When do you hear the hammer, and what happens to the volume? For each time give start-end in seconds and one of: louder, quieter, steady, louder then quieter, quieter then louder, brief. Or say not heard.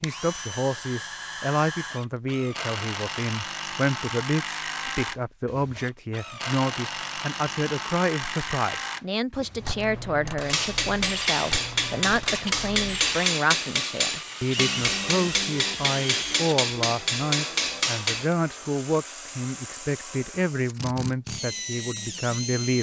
10.4-18.4 steady.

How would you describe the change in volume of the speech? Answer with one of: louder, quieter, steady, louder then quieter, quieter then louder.
steady.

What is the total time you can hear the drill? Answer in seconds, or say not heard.
23 s.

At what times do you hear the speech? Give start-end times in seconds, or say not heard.
0.0-22.7.